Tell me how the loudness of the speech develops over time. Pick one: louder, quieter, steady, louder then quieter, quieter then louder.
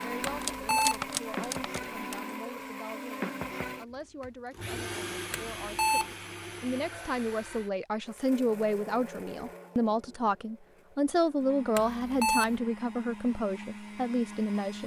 louder.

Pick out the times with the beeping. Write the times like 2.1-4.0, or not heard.
0.2-1.1, 5.3-6.2, 11.8-12.6.